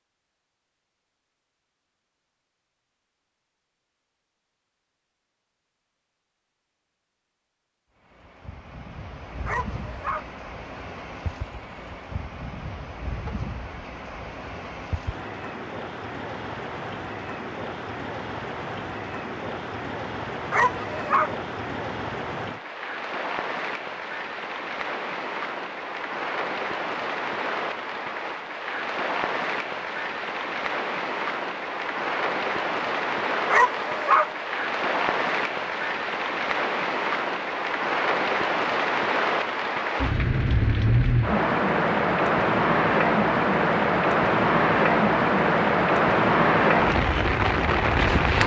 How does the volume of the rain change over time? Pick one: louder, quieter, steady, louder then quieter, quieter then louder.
louder.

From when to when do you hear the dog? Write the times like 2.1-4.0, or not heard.
9.4-10.3, 20.5-21.4, 33.5-34.4.